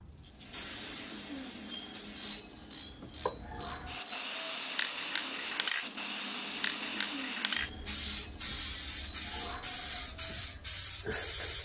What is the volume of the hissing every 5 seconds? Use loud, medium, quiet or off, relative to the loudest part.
medium, loud, loud.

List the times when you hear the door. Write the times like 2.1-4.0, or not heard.
not heard.